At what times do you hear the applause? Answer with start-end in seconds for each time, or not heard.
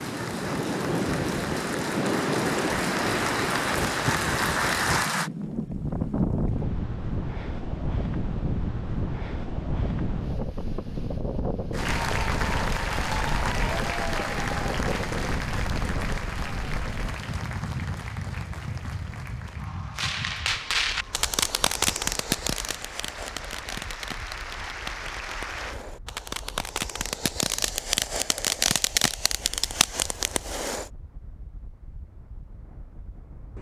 0.0-5.3, 11.7-25.8.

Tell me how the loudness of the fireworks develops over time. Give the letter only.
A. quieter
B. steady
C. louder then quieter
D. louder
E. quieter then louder
E.